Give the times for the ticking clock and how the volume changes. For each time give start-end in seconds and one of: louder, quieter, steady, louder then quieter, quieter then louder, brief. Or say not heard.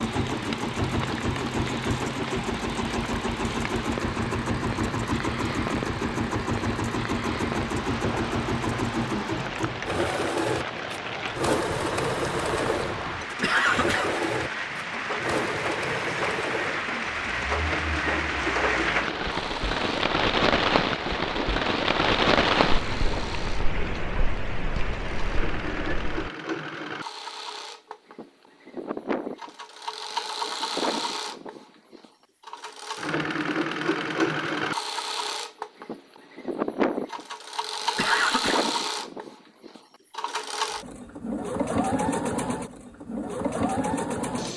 not heard.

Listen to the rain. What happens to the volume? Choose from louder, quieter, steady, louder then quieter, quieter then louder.
louder.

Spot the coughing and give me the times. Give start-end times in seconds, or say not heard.
13.4-14.1, 38.0-38.6.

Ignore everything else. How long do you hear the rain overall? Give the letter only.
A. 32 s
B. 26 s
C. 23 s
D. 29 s
B.